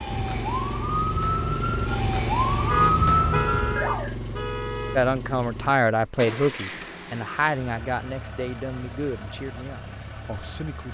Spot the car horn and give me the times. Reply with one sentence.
The car horn can be heard from 2.5 to 5.0 s.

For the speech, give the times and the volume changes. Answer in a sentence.
You can hear the speech from 5.0 to 10.8 s, getting quieter.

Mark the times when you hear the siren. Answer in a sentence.
You can hear the siren from 0.0 to 4.2 s.